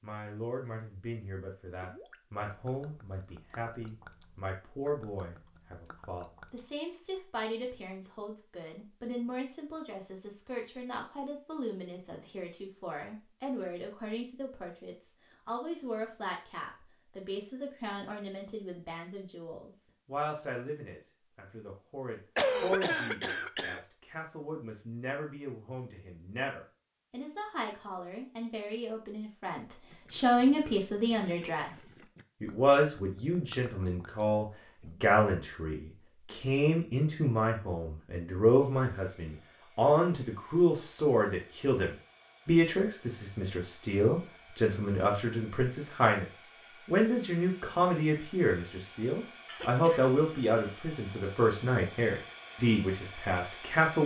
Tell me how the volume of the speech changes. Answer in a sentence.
The loudness of the speech goes up.